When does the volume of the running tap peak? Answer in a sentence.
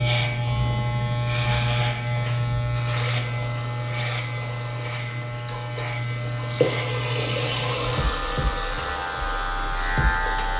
The volume of the running tap peaks at 7 seconds.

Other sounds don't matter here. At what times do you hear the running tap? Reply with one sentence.
You can hear the running tap from 2.8 to 10.5 s.